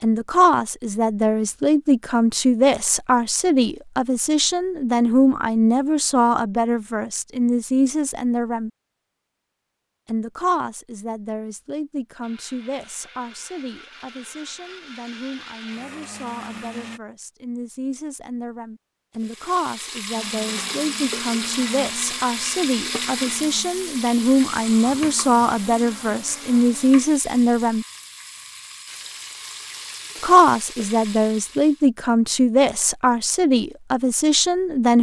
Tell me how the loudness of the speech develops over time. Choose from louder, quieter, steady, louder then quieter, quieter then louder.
quieter then louder.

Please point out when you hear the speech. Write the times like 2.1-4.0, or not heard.
0.0-8.7, 10.1-27.9, 30.2-34.9.